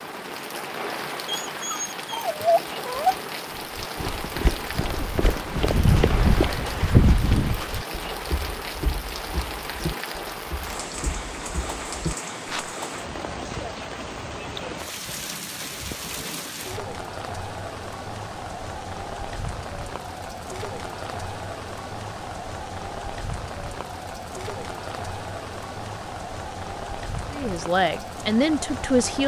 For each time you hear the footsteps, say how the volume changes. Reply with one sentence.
You can hear the footsteps from 3.6 to 12.8 s, getting louder then quieter.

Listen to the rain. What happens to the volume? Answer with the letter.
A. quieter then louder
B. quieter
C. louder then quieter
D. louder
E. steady
E.